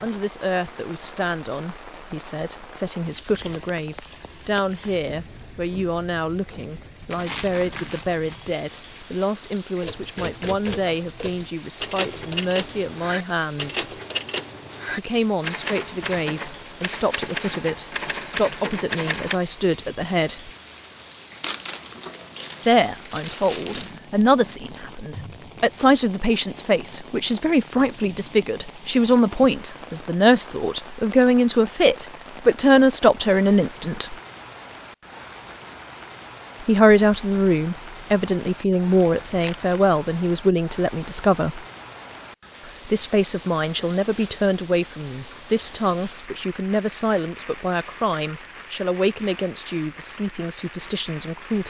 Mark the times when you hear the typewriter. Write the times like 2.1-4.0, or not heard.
9.8-19.4.